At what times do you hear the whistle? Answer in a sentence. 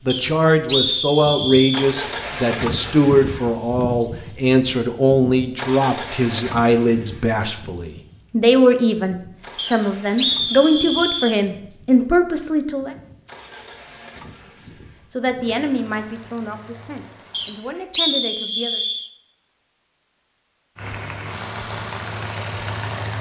You can hear the whistle from 0.1 to 1.9 s, from 9.6 to 11.4 s and from 17.3 to 19.1 s.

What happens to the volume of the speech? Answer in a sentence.
The loudness of the speech goes down.